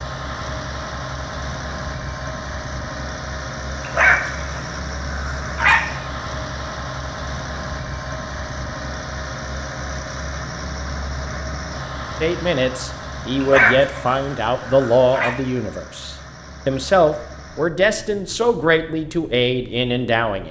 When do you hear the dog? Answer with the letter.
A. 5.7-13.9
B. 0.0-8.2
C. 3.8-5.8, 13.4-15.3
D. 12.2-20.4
C.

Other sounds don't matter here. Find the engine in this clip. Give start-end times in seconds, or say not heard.
0.0-20.4.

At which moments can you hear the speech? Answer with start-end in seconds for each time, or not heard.
12.2-20.4.